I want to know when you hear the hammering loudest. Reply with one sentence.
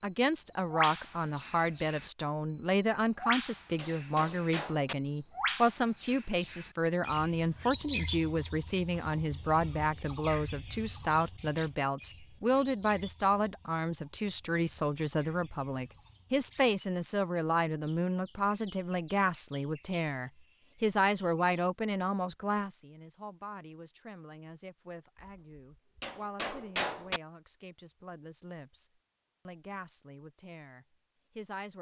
The loudest moment of the hammering is at 27 seconds.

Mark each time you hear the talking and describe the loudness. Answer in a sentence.
You can hear the talking from 0.0 to 31.7 s, getting quieter.